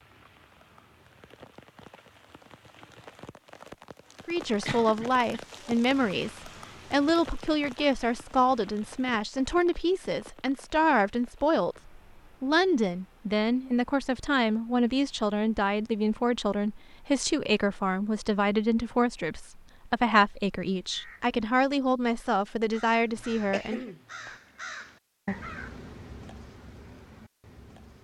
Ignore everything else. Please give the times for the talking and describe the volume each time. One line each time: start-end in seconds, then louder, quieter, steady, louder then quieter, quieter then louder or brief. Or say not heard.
4.2-23.9 steady.